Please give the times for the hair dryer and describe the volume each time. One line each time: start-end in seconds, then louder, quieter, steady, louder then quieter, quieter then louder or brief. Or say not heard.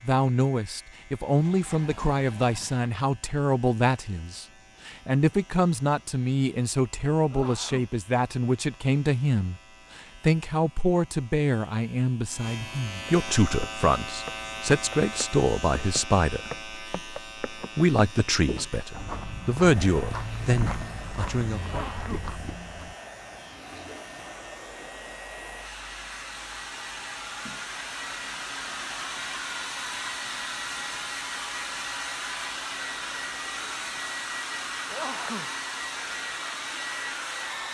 19.6-37.7 louder.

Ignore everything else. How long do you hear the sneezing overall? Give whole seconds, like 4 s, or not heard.
2 s.